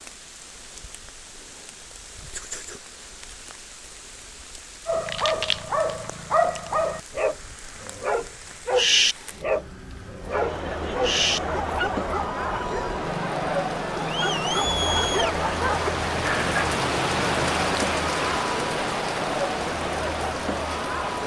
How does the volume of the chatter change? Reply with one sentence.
The volume of the chatter stays about the same.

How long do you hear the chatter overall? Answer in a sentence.
You can hear the chatter for 11 seconds altogether.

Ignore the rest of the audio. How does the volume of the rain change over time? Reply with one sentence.
The volume of the rain goes up.